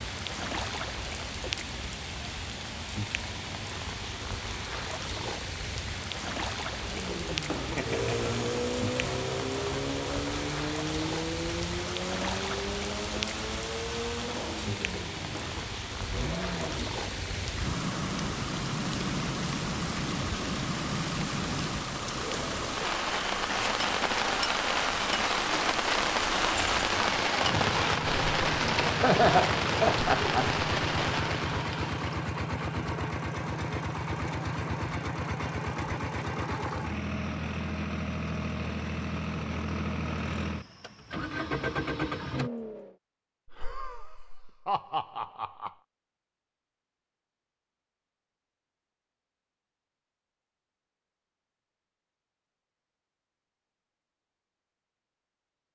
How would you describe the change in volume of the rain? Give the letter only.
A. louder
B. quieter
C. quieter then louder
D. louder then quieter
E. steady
A.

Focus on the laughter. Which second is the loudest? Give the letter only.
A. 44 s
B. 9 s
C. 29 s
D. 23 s
C.